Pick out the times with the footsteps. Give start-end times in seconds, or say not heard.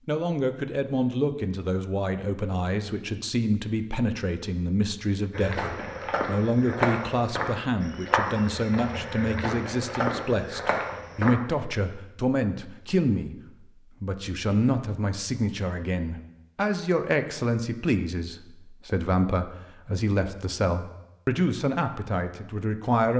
5.3-11.3.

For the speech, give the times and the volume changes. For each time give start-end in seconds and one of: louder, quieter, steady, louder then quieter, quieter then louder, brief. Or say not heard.
0.1-13.3 steady
14.0-23.1 steady.